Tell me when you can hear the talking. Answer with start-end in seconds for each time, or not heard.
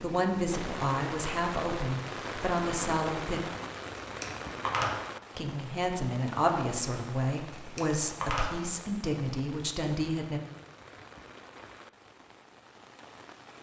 0.0-3.4, 5.3-10.4.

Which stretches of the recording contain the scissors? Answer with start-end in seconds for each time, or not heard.
4.0-5.0, 7.5-8.8.